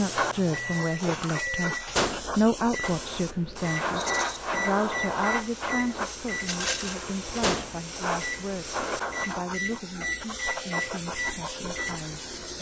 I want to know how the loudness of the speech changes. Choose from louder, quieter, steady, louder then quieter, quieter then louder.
quieter.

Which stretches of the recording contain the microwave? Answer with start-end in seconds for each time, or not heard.
0.0-12.5.